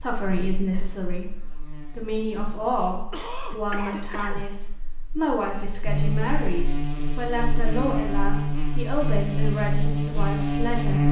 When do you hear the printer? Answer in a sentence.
You can't hear the printer here.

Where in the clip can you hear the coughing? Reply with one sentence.
The coughing can be heard from 2.9 to 4.5 s.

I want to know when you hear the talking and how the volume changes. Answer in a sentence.
You can hear the talking from 0.0 to 11.0 s, at a steady volume.